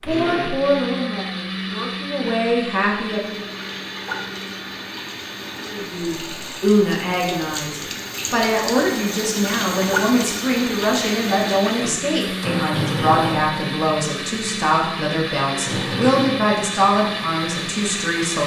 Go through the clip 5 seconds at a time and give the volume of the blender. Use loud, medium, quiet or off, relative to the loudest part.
loud, medium, loud, loud.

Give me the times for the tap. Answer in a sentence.
The tap can be heard from 3.0 to 18.4 s.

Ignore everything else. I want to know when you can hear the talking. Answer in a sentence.
You can hear the talking from 0.1 to 3.5 s and from 5.6 to 18.4 s.